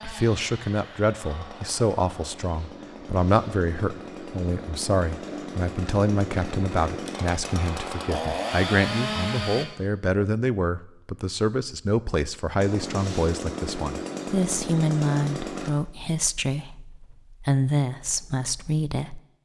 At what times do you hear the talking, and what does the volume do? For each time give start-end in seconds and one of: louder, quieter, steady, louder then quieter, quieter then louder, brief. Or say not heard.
0.0-19.4 steady.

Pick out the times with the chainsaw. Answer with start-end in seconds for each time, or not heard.
0.0-9.7, 12.6-15.7.